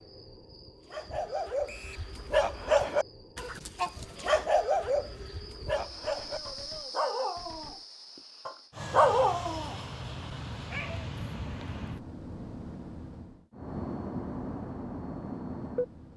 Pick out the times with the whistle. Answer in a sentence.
The whistle can be heard from 1.6 to 2.1 s.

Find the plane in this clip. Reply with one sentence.
The plane can be heard from 8.7 to 16.1 s.